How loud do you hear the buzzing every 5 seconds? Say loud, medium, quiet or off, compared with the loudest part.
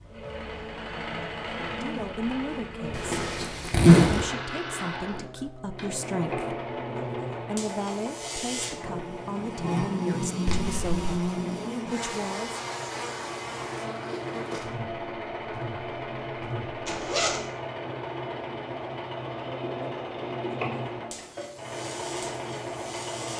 medium, loud, loud, medium, medium.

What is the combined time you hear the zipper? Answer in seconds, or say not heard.
3 s.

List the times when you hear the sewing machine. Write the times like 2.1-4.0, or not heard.
0.0-23.3.